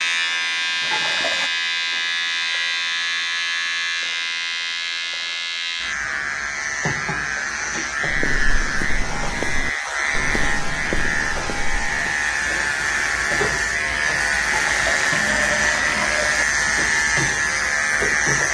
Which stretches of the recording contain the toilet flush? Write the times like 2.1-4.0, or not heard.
0.8-1.5, 14.4-16.4.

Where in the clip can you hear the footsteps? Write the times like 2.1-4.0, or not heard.
8.1-12.1.